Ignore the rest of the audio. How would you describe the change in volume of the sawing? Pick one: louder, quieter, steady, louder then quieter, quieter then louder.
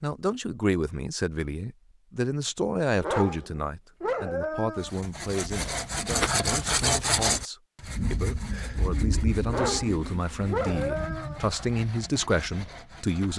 quieter.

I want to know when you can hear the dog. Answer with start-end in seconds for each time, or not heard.
3.0-4.9, 9.4-11.4.